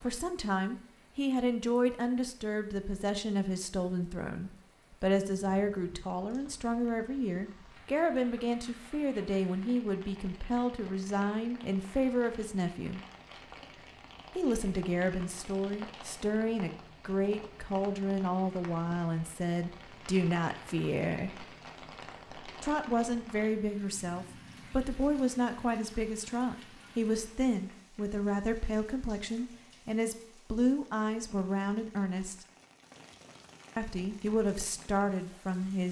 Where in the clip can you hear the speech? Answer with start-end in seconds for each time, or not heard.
0.0-13.0, 14.3-21.3, 22.6-32.5, 33.8-35.8.